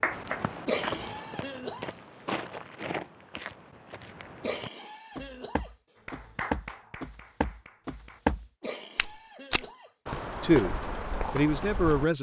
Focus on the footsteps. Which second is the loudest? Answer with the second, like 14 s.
8 s.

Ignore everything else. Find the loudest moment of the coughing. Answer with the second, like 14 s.
1 s.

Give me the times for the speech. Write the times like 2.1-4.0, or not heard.
10.4-12.1.